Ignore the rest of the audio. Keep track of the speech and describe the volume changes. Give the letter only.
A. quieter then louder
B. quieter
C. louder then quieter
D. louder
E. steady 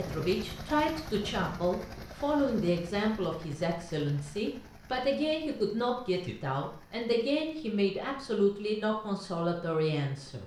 E.